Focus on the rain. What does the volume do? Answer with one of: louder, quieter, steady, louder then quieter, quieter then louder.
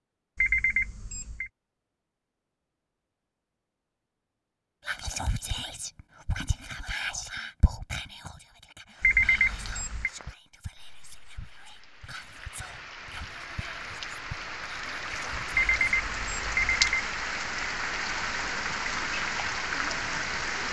louder.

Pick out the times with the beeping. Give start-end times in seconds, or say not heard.
0.3-1.5, 9.0-10.1, 15.5-17.1.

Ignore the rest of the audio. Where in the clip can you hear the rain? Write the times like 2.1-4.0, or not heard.
8.9-20.6.